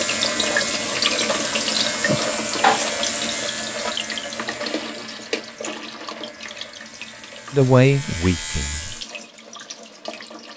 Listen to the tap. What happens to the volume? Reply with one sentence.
The volume of the tap goes down.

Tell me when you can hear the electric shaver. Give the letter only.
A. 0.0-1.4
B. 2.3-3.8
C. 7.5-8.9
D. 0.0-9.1
D.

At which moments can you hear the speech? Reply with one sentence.
The speech can be heard from 7.5 to 8.9 s.